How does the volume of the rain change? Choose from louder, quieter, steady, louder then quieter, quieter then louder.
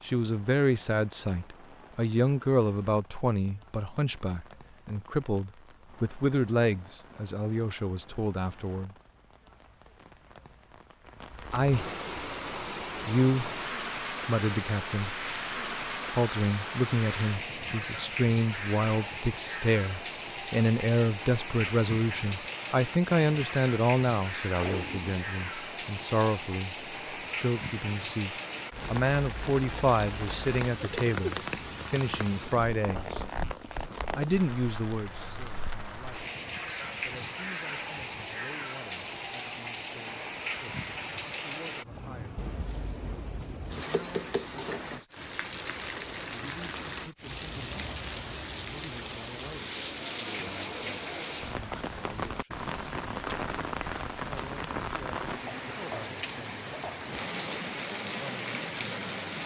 louder.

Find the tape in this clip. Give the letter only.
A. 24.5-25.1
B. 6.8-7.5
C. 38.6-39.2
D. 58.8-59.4
A.